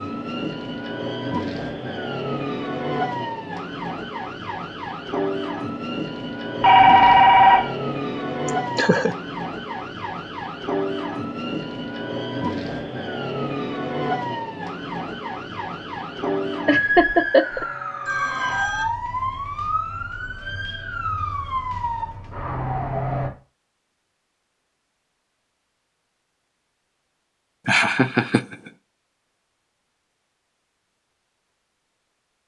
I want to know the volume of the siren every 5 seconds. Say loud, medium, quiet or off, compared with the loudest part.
loud, loud, loud, loud, loud, off, off.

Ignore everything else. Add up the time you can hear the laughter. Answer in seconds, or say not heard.
3 s.